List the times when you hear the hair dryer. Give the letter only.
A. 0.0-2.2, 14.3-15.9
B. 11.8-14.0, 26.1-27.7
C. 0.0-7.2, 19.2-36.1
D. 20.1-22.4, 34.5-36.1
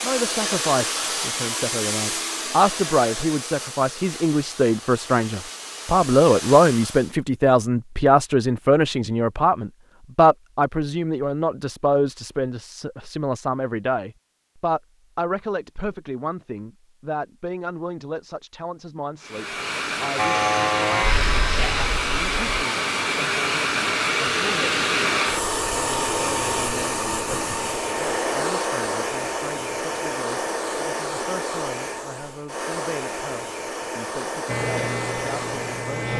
C.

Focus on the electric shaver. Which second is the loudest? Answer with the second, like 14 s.
21 s.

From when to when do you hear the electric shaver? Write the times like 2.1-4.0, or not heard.
20.1-22.4, 34.5-36.1.